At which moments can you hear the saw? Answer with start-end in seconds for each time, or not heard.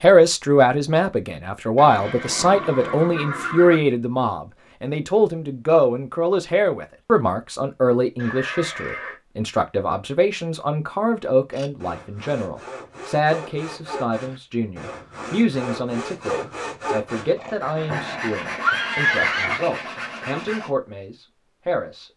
11.5-20.7.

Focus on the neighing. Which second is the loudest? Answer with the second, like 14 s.
19 s.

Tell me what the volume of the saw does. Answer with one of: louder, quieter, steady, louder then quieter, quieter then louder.
louder.